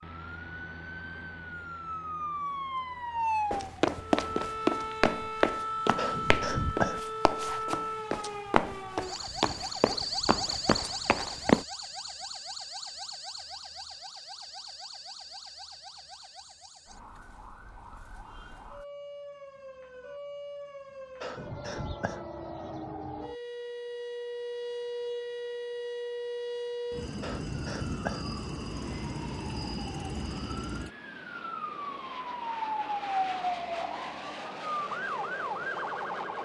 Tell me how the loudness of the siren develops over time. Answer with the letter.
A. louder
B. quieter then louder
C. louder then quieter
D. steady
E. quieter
B.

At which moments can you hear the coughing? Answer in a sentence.
You can hear the coughing from 6.0 to 7.0 s, from 21.2 to 22.2 s and from 27.2 to 28.2 s.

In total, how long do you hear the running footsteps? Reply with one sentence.
You can hear the running footsteps for 8 seconds altogether.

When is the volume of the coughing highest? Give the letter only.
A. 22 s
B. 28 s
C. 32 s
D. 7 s
D.